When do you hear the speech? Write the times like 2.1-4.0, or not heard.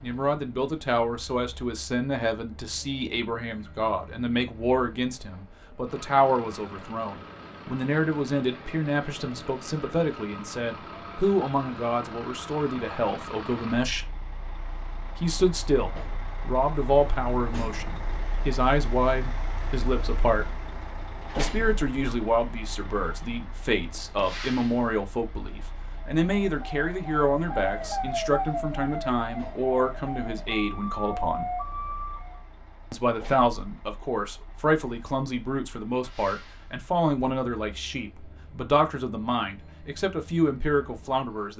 0.0-14.1, 15.2-20.5, 21.4-31.4, 32.9-41.5.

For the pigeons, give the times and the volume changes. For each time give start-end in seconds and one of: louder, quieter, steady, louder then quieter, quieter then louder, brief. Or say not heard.
not heard.